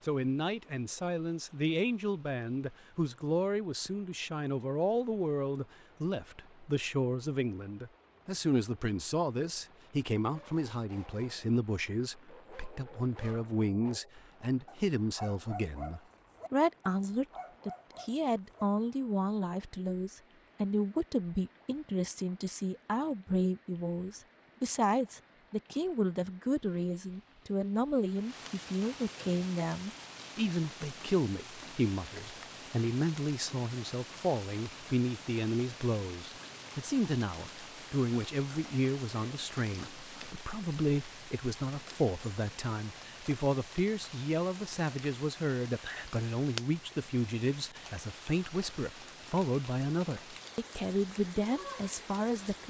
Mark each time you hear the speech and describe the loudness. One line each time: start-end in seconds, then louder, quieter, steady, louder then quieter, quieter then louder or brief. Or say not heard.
0.0-52.6 steady.